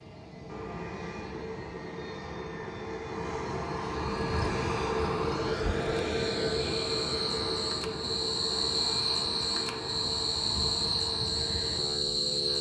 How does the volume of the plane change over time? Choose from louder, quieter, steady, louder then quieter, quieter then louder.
louder then quieter.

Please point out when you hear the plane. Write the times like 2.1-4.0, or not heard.
0.0-12.5.